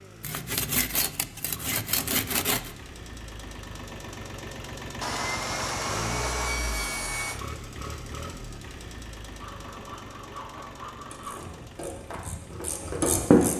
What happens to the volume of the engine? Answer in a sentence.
The volume of the engine goes up, then down.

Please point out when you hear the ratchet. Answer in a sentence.
The ratchet can be heard from 11.0 to 13.5 s.